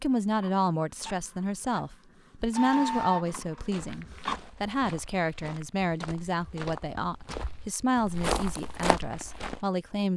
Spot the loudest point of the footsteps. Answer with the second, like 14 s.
8 s.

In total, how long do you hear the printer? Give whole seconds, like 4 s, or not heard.
4 s.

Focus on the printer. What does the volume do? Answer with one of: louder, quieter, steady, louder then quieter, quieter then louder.
louder then quieter.